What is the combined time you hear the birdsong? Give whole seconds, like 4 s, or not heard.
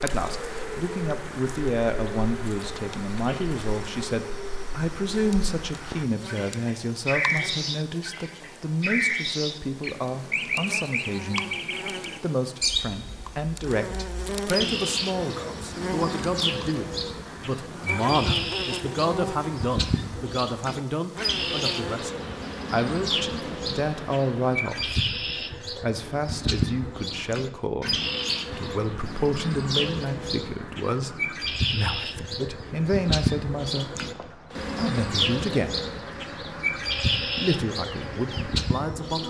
39 s.